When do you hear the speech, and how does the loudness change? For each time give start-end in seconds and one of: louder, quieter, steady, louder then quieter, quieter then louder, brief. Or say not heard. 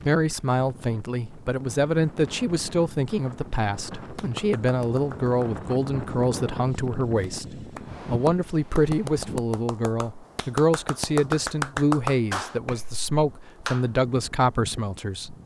0.0-15.3 steady.